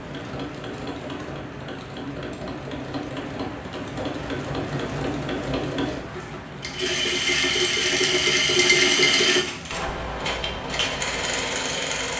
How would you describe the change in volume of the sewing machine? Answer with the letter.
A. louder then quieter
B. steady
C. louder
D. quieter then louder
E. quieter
A.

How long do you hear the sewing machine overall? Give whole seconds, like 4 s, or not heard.
12 s.